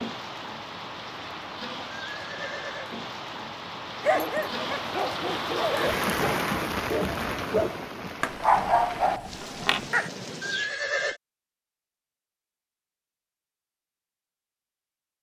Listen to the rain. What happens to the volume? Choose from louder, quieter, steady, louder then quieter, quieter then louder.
louder then quieter.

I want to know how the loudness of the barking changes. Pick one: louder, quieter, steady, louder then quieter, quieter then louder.
louder.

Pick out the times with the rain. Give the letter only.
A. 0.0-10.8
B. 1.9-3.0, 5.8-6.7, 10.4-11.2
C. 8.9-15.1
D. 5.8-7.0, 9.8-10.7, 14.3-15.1
A.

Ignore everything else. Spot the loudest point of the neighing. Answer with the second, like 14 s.
11 s.